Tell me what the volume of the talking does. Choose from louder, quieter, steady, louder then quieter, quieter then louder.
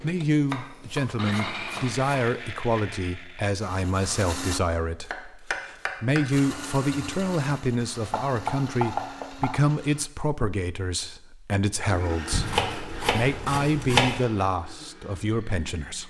steady.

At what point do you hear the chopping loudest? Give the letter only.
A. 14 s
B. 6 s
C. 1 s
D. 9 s
A.